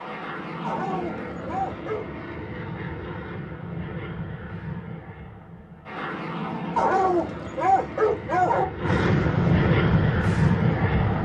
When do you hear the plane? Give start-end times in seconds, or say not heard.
0.0-11.2.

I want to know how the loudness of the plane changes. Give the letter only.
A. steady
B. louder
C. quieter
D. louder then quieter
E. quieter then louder
B.